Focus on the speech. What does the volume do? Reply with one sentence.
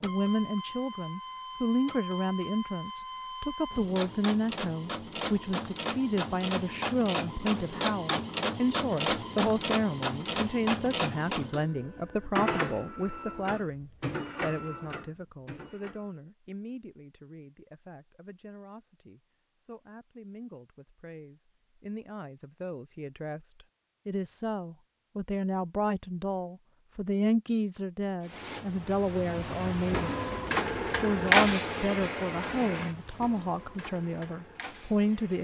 The loudness of the speech goes down, then up.